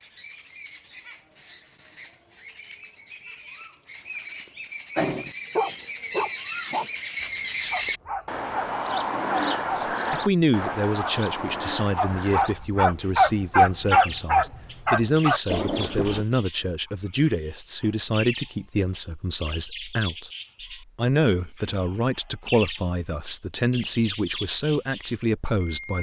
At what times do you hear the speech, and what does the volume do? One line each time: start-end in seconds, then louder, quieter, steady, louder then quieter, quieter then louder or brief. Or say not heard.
9.8-25.9 steady.